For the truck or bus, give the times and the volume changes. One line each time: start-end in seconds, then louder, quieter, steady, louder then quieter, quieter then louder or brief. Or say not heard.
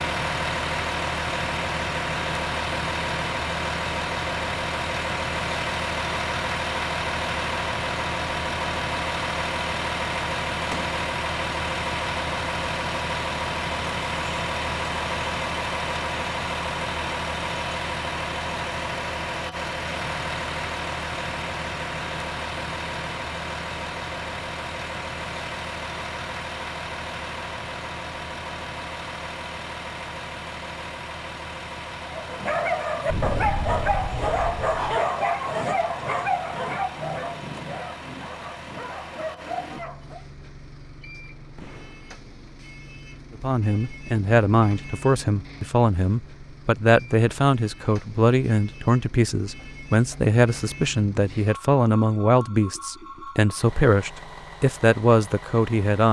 0.0-56.0 quieter.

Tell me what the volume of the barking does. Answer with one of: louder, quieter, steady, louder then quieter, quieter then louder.
quieter.